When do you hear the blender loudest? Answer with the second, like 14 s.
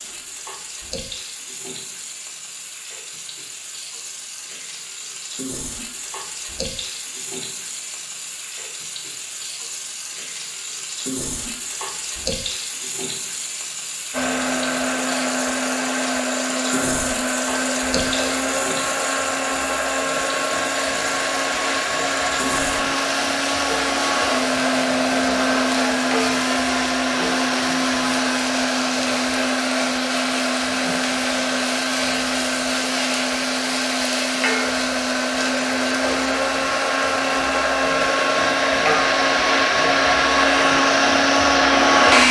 42 s.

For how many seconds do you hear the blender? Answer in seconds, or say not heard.
28 s.